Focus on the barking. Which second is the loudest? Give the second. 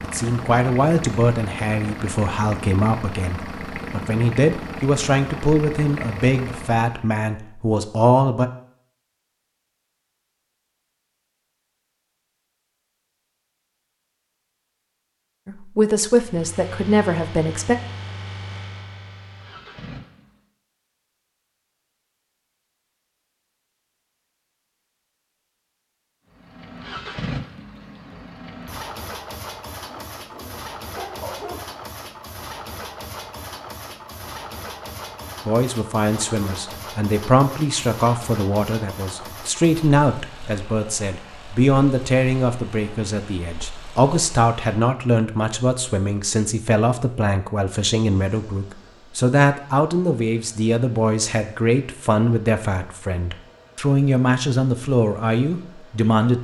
31 s.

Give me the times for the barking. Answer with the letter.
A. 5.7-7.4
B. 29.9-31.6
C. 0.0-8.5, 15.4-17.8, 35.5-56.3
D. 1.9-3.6
B.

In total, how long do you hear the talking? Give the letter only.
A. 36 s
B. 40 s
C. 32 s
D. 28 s
C.